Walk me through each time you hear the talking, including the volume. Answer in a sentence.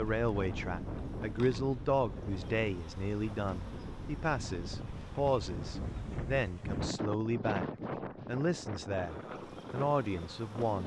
You can hear the talking from 0.0 to 7.7 s, at a steady volume; and briefly from 8.2 to 10.8 s.